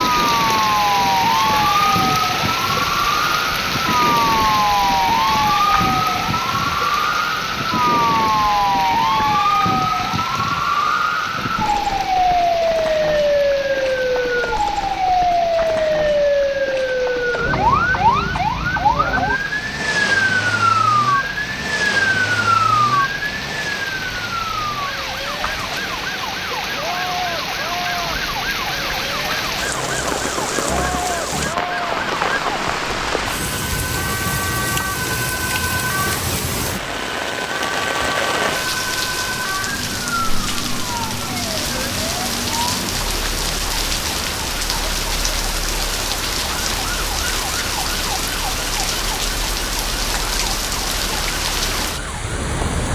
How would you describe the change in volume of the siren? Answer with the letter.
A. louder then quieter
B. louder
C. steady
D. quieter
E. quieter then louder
D.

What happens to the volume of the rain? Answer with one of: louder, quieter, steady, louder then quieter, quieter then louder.
quieter then louder.